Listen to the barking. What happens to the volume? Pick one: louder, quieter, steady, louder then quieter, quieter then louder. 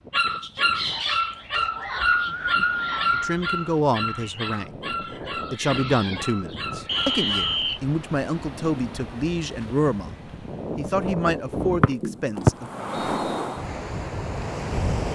quieter.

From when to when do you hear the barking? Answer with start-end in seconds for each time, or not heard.
0.1-7.6.